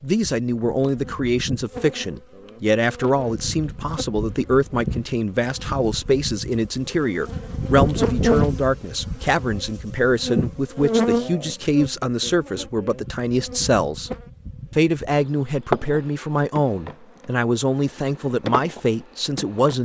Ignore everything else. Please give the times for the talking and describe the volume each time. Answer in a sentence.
The talking can be heard from 0.0 to 14.1 s, at a steady volume; and from 14.7 to 19.8 s, at a steady volume.